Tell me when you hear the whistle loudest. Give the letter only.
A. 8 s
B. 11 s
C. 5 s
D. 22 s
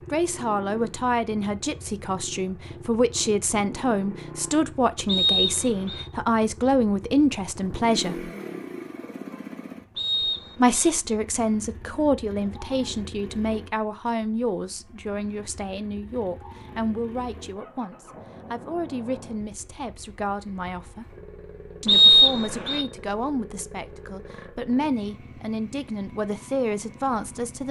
D.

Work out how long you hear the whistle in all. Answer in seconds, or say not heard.
3 s.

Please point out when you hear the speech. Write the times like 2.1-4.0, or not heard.
0.1-8.3, 10.6-21.1, 21.8-27.6.